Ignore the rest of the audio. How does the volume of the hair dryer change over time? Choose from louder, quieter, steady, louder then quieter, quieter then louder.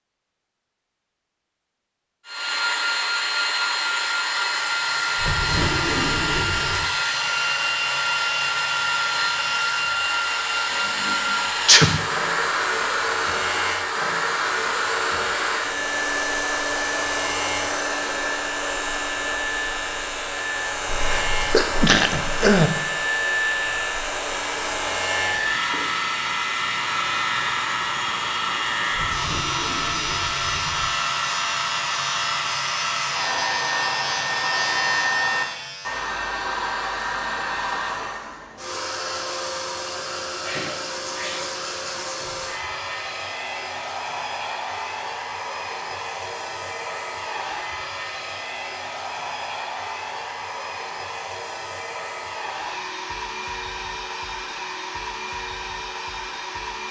quieter.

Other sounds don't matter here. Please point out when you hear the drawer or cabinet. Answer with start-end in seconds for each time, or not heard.
5.2-7.0, 28.9-30.9.